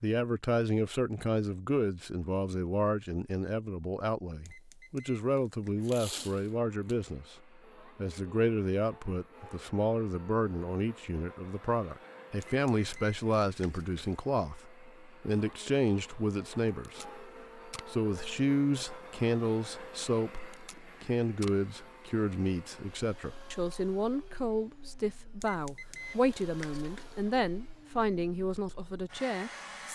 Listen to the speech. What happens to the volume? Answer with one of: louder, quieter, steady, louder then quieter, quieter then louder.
steady.